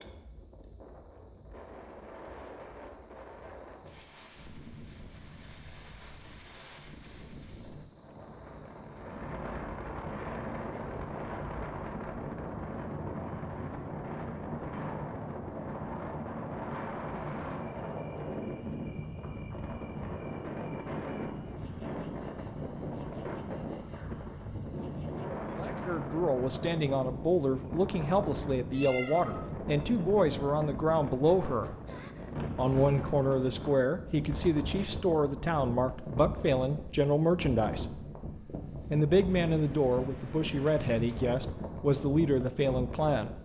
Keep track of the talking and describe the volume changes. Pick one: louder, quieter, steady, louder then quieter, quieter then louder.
steady.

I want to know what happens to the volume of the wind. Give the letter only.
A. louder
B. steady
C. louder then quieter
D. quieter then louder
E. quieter
A.